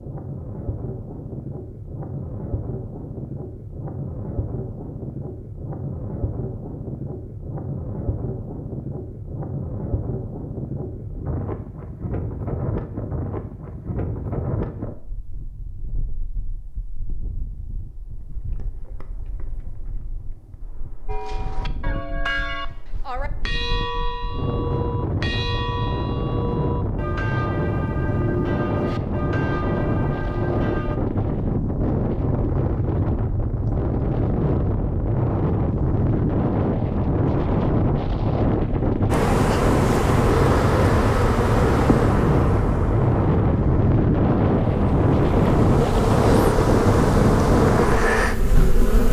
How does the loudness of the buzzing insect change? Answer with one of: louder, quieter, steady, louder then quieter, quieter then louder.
quieter then louder.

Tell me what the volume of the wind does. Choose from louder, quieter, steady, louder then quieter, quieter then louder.
louder.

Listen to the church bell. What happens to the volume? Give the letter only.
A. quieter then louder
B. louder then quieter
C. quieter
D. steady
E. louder
D.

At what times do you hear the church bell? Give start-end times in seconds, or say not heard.
21.1-31.0.